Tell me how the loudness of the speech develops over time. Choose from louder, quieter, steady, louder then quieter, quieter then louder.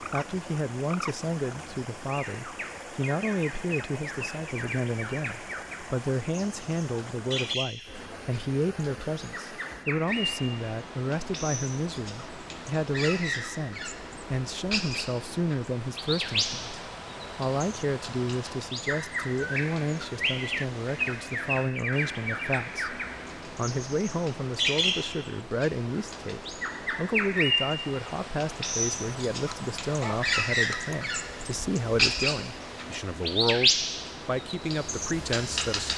steady.